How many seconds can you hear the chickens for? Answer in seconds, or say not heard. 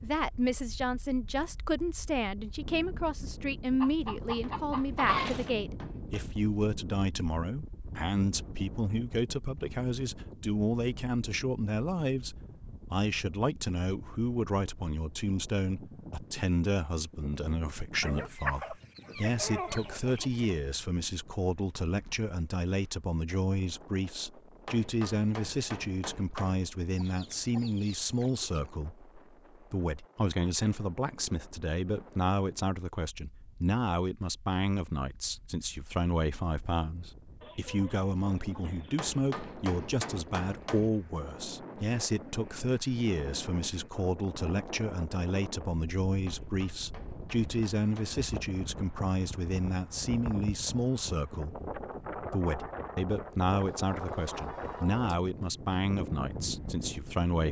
9 s.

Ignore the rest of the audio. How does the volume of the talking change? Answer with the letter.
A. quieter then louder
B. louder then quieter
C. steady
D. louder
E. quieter
C.